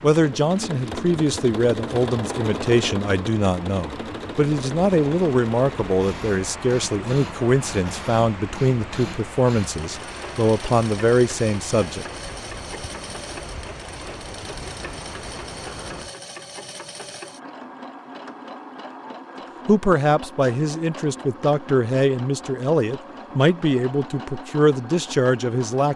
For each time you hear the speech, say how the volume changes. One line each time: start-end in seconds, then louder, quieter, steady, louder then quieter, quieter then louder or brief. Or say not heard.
0.0-12.1 steady
19.6-25.9 steady.